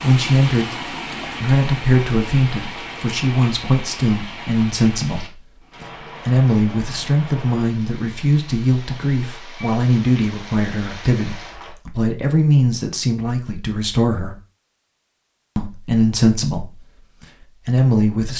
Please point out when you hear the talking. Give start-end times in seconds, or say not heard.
0.0-14.3, 15.6-16.8, 17.6-18.3.